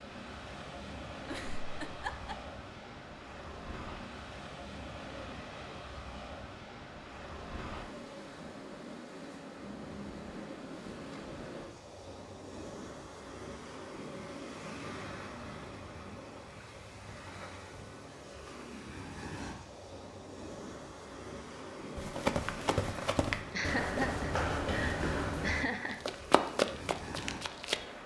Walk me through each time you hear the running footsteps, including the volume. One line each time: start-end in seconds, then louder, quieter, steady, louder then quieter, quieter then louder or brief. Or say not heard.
21.9-27.9 steady.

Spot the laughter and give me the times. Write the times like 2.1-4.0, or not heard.
1.2-2.4, 23.5-26.0.